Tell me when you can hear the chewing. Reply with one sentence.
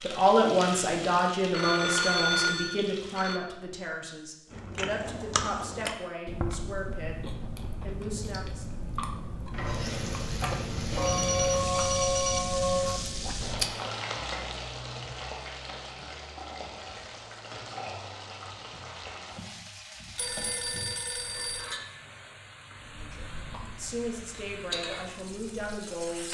You can hear the chewing from 4.5 to 13.7 s and from 22.7 to 26.2 s.